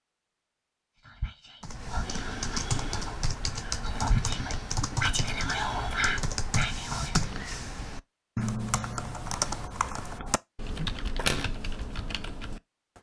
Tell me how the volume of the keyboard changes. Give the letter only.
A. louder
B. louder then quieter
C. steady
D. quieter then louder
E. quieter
C.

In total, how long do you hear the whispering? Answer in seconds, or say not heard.
6 s.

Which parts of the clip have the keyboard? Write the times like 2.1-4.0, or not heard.
1.6-12.9.